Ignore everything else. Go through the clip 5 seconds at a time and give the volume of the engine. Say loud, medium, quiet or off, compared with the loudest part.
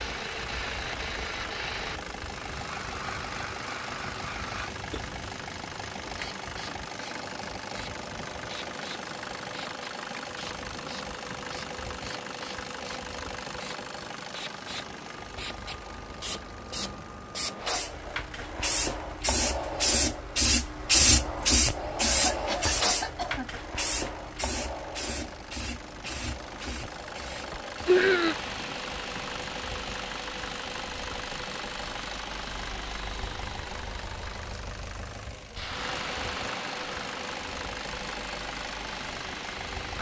loud, loud, loud, medium, medium, loud, loud, loud.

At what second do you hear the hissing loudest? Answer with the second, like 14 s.
21 s.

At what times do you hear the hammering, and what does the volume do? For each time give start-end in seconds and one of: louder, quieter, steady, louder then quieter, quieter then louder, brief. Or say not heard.
not heard.